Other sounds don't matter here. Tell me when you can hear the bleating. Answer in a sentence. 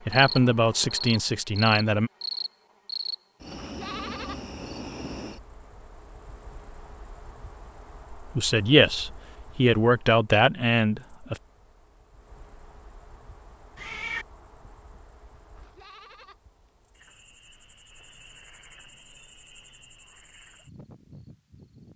You can hear the bleating from 3.5 to 4.4 s and from 15.6 to 16.4 s.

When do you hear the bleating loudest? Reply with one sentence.
The loudest moment of the bleating is at 4 seconds.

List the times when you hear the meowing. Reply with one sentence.
You can hear the meowing from 13.8 to 14.2 s.